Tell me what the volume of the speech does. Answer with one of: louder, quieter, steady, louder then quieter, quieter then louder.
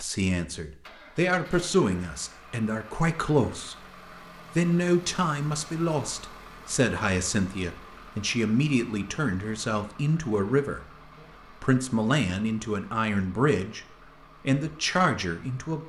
steady.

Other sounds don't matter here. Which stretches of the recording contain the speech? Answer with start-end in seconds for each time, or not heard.
0.0-3.8, 4.5-10.8, 11.5-15.8.